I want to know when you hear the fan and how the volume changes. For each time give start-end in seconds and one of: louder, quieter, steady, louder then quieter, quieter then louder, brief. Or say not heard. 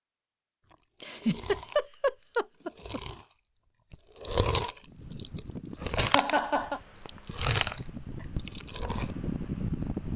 4.8-10.1 quieter then louder.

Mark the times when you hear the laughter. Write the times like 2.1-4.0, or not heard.
1.0-3.0, 6.0-6.8.